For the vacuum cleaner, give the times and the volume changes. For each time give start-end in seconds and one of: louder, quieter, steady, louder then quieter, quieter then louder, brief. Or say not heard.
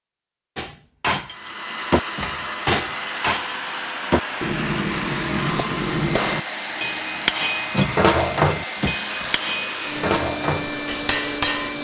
1.2-11.8 steady.